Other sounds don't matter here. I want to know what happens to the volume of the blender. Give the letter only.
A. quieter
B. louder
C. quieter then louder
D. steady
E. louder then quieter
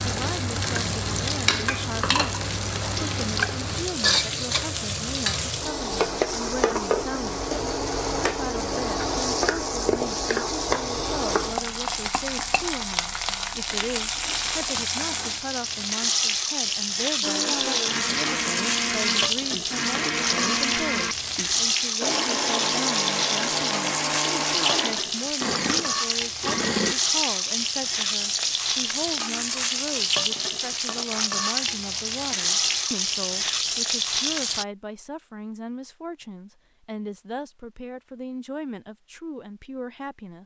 D.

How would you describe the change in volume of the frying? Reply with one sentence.
The volume of the frying stays about the same.